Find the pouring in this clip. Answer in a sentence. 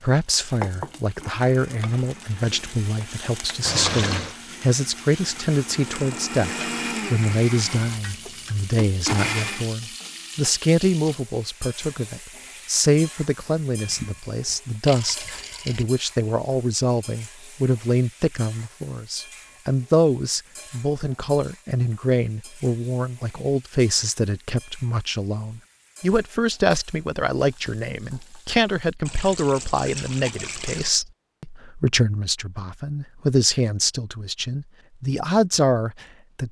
You can hear the pouring from 3.6 to 4.3 s, from 13.8 to 15.8 s and from 29.1 to 30.9 s.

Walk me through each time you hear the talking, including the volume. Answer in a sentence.
You can hear the talking from 0.0 to 36.4 s, at a steady volume.